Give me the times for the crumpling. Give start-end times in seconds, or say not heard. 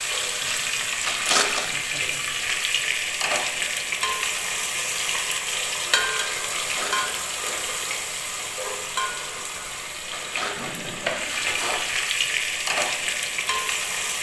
1.0-1.9, 6.5-7.7, 10.1-12.1.